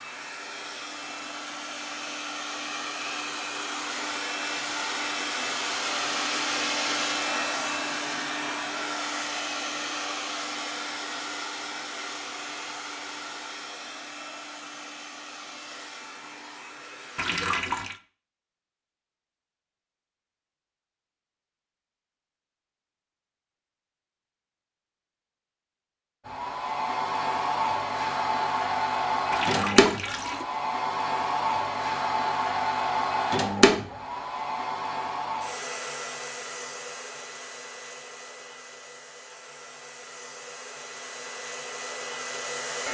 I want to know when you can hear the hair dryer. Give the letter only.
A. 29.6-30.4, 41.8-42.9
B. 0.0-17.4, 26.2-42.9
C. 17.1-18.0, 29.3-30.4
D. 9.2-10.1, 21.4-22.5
B.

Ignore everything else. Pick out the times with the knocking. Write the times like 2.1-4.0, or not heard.
not heard.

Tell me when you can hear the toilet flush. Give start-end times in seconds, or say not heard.
17.1-18.0, 29.3-30.4.